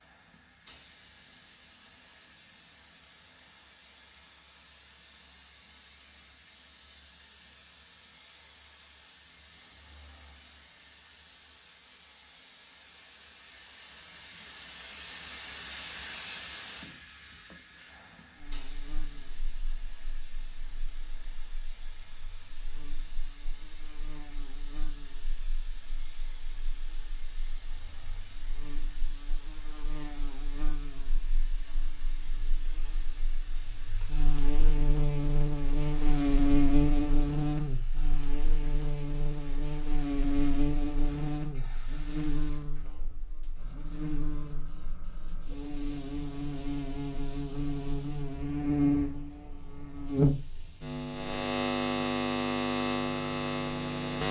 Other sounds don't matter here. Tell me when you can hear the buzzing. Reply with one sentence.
The buzzing can be heard from 18.4 to 54.2 s.